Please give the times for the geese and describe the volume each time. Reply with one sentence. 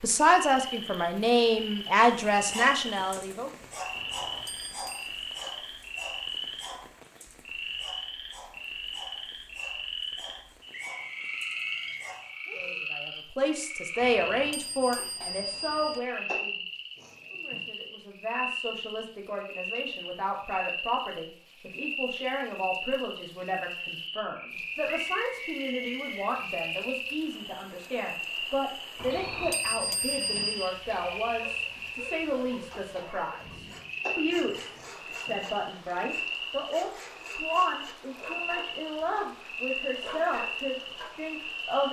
The geese can't be heard in this clip.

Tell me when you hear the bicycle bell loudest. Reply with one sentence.
The volume of the bicycle bell peaks at 30 seconds.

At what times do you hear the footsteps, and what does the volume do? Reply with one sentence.
You can't hear the footsteps here.